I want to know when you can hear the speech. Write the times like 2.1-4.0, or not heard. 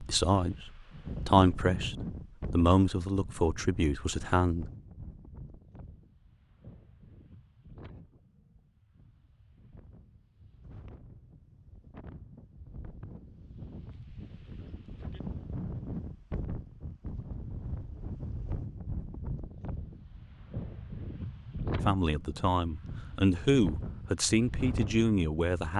0.0-4.7, 21.9-25.7.